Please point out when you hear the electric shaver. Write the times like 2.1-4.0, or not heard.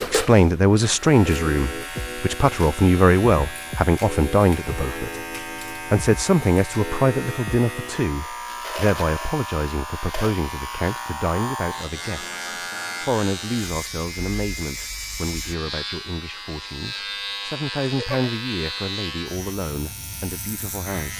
0.0-21.1.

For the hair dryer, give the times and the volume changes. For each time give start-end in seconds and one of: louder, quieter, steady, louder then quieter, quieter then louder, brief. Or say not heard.
not heard.